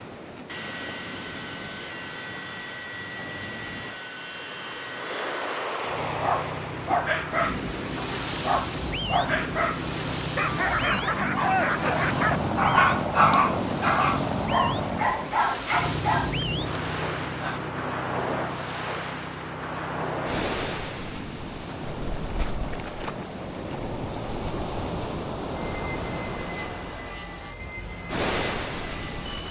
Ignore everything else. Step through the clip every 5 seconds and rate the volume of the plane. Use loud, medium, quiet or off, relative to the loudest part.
medium, medium, loud, medium, medium, medium.